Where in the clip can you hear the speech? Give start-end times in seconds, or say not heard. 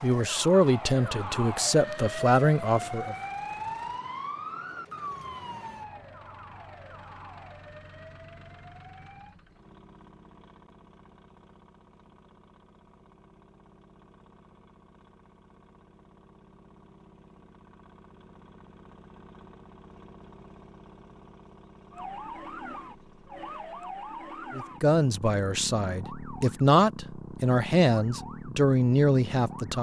0.0-3.1, 24.5-29.7.